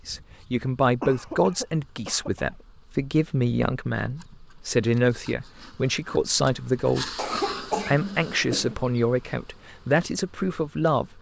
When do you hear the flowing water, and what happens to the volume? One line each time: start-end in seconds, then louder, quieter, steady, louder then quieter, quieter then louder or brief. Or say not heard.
not heard.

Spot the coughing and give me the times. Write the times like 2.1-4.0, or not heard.
1.0-2.5, 7.2-8.8.